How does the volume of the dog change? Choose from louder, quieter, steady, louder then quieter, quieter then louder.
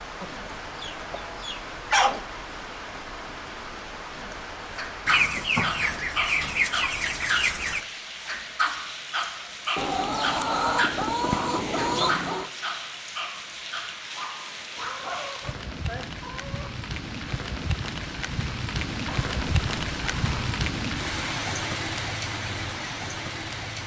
quieter.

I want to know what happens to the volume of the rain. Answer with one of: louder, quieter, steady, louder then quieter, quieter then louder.
louder.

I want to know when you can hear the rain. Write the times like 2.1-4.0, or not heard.
0.0-23.8.